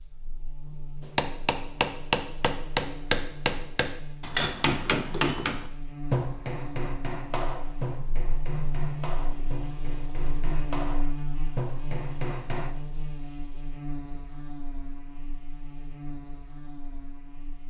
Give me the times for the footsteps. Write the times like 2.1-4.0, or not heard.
not heard.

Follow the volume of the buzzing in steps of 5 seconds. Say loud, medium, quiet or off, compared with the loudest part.
medium, loud, loud, medium.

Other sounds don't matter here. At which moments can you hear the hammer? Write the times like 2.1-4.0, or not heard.
1.1-12.7.